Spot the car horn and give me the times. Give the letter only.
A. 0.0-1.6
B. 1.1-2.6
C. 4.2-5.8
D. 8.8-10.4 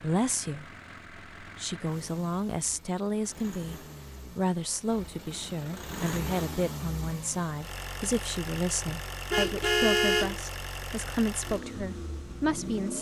D.